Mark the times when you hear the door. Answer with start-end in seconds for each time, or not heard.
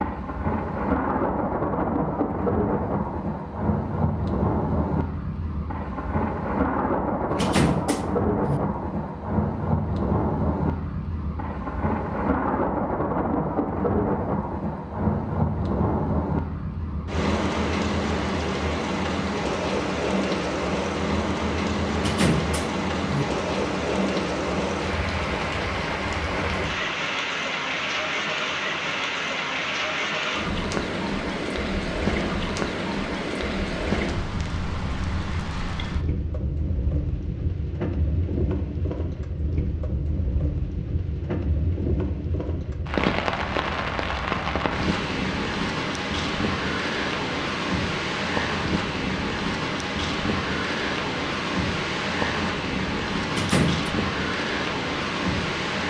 7.3-8.6, 21.9-23.2, 53.3-53.9.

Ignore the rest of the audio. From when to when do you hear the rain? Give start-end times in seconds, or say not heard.
0.0-55.8.